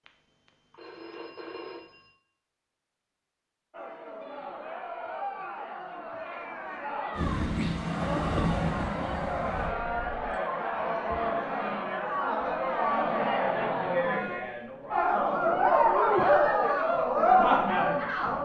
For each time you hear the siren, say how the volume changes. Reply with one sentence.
The siren can't be heard in this clip.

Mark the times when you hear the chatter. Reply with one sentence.
You can hear the chatter from 3.7 to 18.4 s.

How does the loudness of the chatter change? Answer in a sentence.
The loudness of the chatter goes up.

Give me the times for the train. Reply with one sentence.
The train can be heard from 7.2 to 9.8 s.